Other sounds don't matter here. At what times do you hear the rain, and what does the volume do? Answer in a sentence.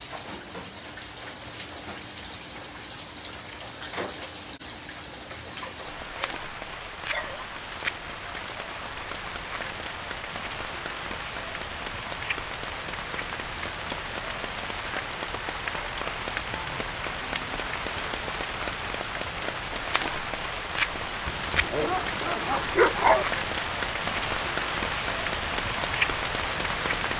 You can hear the rain from 0.0 to 27.1 s, getting louder.